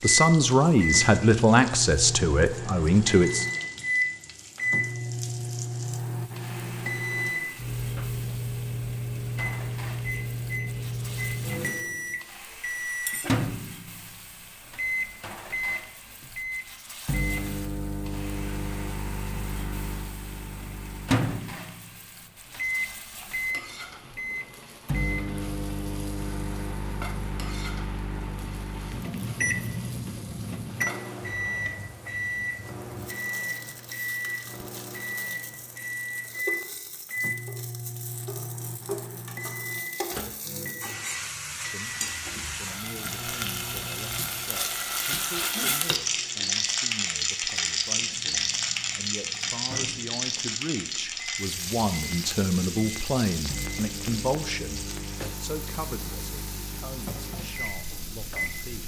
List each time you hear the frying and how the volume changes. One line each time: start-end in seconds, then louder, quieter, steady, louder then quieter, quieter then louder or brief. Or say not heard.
0.1-58.8 louder.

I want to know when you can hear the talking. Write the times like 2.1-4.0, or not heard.
0.0-3.5, 41.5-58.8.